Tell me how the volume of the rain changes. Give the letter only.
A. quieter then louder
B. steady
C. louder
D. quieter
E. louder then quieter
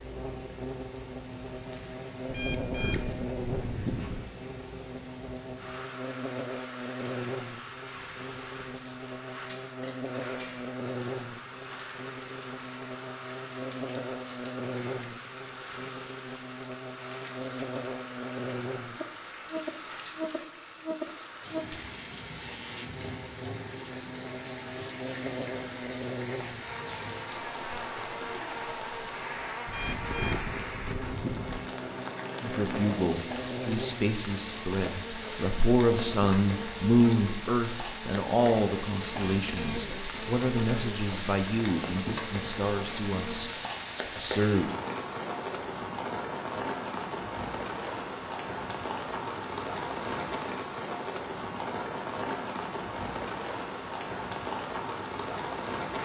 C.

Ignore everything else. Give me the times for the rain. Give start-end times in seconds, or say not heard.
0.0-55.9.